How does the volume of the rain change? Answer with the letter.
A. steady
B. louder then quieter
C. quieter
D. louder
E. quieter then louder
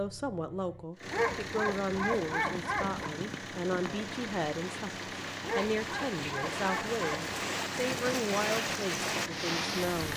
D.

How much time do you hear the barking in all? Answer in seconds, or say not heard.
4 s.